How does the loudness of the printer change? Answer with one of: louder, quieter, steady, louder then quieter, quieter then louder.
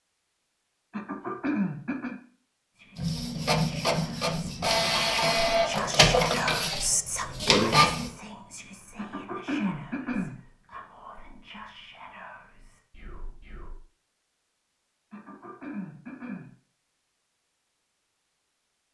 steady.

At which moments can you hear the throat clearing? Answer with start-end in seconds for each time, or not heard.
0.9-2.1, 8.9-10.4, 15.1-16.6.